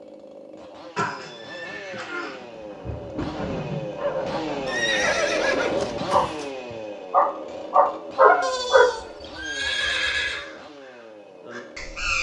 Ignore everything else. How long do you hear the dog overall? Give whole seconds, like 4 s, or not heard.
6 s.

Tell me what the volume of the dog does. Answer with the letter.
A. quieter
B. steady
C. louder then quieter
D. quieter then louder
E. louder
E.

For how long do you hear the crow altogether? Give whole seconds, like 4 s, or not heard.
2 s.